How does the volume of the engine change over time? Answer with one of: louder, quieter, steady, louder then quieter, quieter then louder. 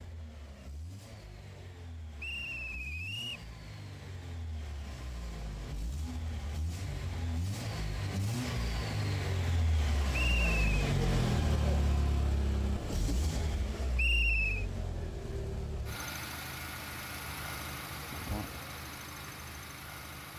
louder then quieter.